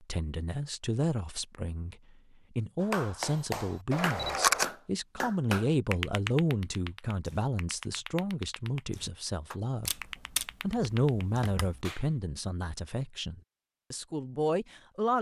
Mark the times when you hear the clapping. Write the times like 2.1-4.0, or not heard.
2.8-12.1.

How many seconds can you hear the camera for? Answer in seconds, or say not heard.
3 s.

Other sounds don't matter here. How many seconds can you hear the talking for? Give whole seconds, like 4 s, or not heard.
14 s.